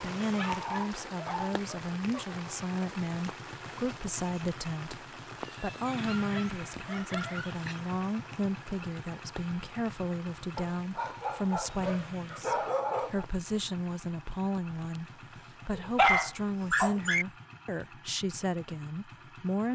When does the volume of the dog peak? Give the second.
16 s.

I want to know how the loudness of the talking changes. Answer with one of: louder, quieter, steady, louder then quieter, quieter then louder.
steady.